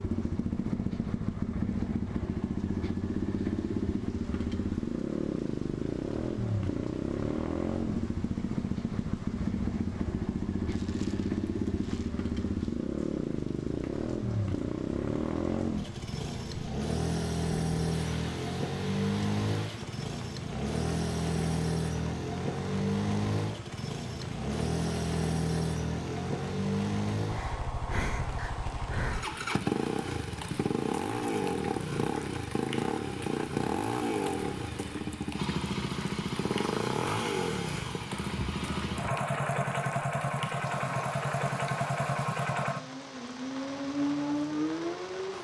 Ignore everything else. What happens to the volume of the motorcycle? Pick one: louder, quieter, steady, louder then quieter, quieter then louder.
steady.